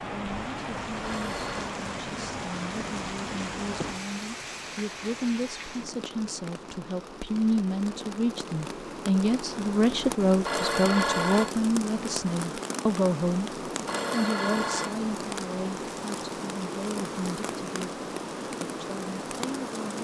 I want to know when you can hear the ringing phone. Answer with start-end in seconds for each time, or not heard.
1.0-1.8, 10.4-11.6, 13.8-14.9.